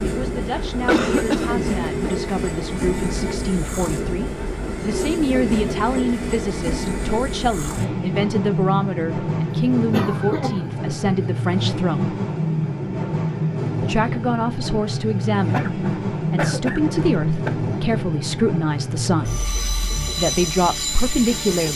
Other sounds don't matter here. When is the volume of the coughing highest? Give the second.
1 s.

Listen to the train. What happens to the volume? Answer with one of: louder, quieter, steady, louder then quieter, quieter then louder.
steady.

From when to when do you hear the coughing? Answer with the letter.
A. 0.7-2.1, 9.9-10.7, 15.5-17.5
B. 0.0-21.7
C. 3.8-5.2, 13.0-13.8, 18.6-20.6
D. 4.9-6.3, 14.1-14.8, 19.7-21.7
A.